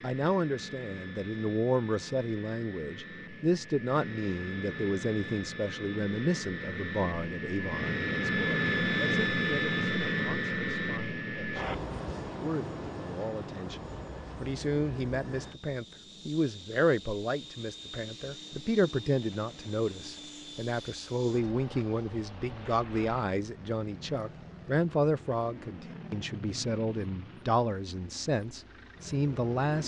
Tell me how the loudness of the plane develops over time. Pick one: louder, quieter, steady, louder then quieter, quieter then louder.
louder then quieter.